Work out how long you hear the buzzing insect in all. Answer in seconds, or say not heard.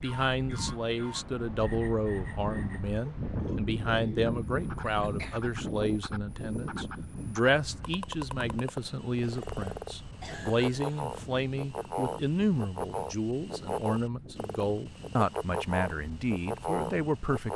not heard.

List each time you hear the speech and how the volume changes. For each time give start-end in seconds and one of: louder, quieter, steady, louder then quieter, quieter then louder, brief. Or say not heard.
0.0-17.5 steady.